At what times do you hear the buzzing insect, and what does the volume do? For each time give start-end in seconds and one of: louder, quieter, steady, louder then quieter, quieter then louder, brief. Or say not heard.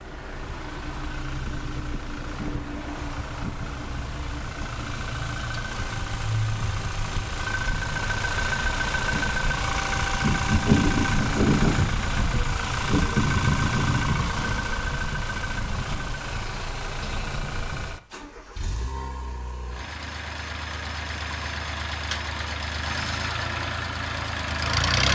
9.1-17.6 quieter.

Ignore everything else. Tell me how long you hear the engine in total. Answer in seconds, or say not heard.
25 s.